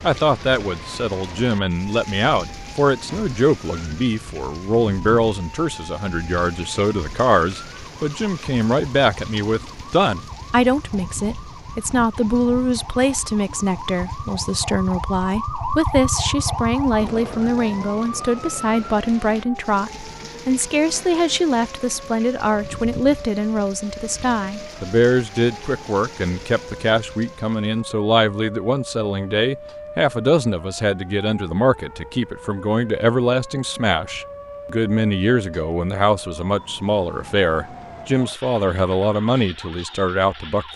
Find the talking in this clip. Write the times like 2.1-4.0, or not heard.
0.0-40.7.